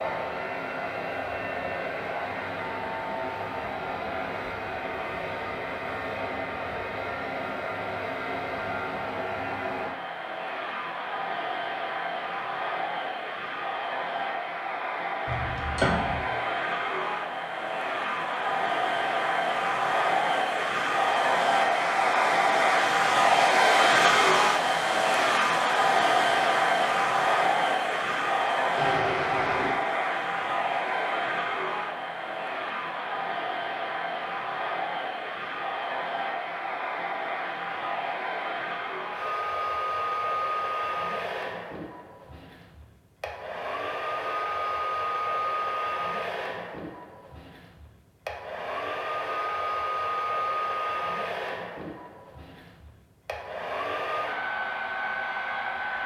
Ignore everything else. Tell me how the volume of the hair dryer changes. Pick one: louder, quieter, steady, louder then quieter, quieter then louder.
louder then quieter.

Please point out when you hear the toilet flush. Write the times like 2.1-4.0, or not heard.
15.2-16.3, 28.8-29.8.